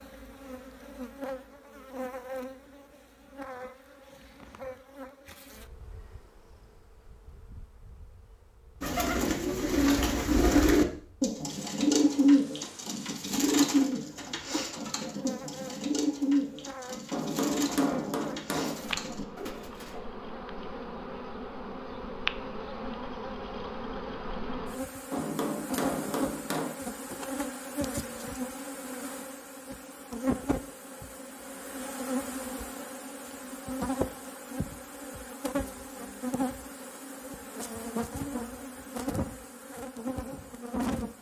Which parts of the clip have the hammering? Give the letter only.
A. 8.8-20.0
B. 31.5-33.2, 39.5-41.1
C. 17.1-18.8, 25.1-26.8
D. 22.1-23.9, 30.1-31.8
C.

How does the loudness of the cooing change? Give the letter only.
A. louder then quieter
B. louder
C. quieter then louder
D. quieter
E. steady
D.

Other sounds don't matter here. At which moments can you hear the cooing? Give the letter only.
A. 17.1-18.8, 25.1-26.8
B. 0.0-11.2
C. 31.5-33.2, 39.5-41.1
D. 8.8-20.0
D.